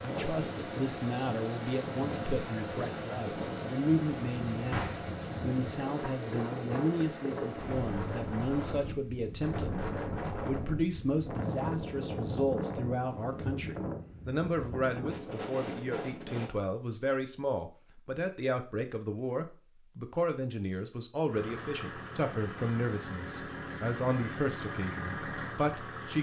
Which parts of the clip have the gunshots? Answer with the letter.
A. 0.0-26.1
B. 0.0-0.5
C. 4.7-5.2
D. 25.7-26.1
C.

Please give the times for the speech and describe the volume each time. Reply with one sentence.
You can hear the speech from 0.0 to 26.1 s, at a steady volume.